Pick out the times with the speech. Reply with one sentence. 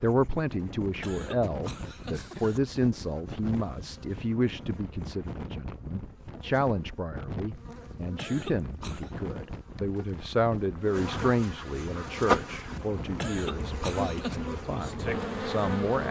The speech can be heard from 0.0 to 16.0 s.